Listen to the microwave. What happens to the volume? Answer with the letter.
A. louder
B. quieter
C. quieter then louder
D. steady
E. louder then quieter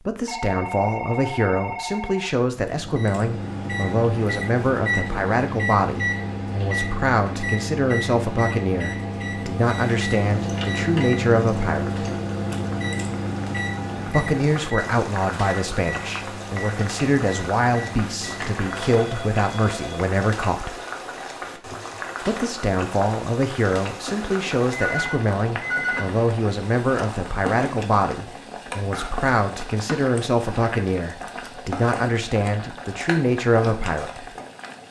B.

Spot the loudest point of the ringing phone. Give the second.
26 s.